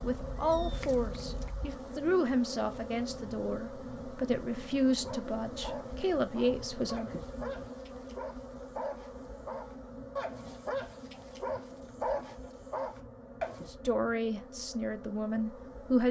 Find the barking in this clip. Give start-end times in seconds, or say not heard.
5.0-13.7.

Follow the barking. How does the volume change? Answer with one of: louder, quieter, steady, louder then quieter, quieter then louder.
louder.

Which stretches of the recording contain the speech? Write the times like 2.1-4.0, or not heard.
0.0-7.1, 13.7-16.0.